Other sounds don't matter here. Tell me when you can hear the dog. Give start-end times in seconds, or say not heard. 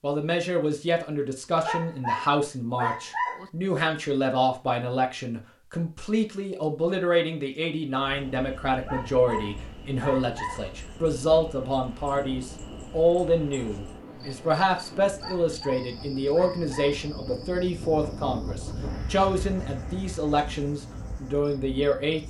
1.6-3.5, 8.8-10.7, 15.2-17.1.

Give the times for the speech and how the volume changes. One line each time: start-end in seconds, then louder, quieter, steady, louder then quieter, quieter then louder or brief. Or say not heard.
0.0-22.2 steady.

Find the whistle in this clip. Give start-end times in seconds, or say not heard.
not heard.